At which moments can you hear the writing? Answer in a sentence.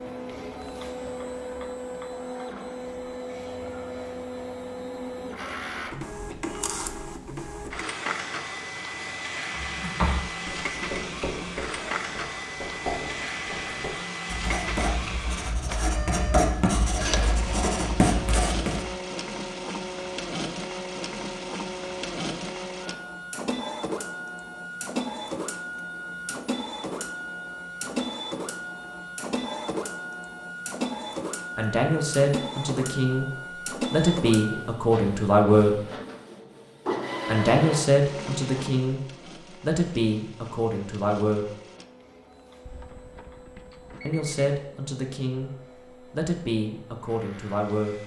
You can hear the writing from 9.5 to 18.9 s.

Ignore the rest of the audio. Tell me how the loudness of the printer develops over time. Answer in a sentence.
The volume of the printer goes down.